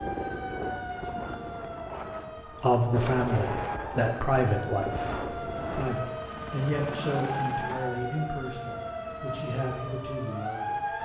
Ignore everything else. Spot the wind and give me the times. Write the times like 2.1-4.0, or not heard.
0.0-5.8.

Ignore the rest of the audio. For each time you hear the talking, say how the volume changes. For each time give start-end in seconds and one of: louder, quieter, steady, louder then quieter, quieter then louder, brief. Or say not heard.
2.6-10.9 quieter.